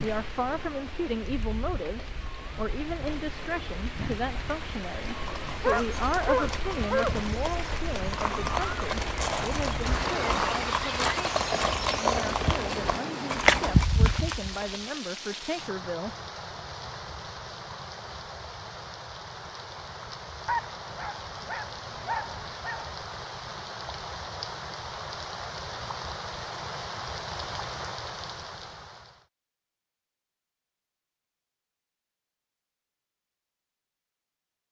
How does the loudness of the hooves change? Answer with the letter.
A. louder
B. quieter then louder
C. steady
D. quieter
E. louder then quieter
A.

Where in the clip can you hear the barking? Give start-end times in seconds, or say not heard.
5.6-7.3, 20.4-22.9.